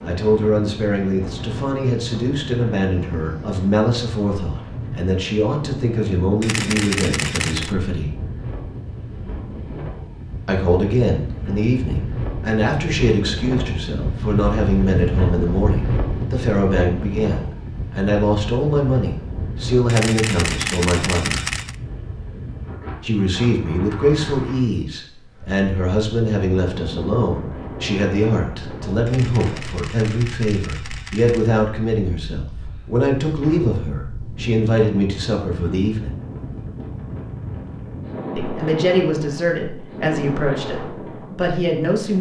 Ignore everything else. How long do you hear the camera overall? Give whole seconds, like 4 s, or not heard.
6 s.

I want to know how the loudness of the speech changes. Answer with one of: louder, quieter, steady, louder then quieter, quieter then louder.
steady.